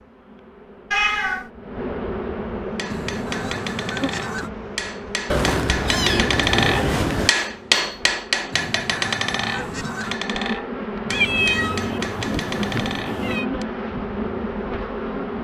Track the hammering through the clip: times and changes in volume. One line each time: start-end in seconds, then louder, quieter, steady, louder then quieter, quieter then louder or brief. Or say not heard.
2.8-13.7 louder then quieter.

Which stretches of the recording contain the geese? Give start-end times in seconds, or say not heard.
2.9-4.5, 8.5-10.2.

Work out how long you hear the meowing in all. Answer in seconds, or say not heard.
5 s.